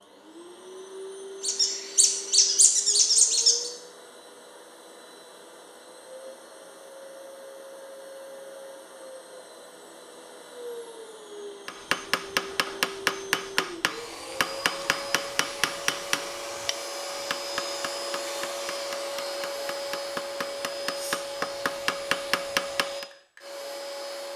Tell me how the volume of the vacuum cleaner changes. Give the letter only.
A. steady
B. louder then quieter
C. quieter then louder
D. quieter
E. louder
E.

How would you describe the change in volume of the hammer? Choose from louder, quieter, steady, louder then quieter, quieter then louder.
quieter then louder.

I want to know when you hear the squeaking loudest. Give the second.
3 s.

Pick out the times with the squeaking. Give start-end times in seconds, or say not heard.
1.4-3.7.